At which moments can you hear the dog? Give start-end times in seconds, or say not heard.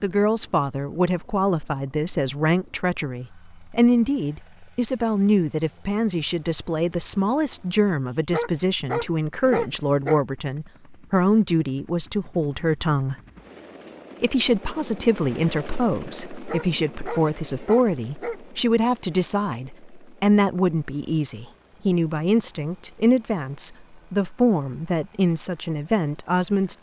8.3-10.2, 16.4-18.4.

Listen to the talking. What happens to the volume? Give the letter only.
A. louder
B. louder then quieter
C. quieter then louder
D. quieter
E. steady
E.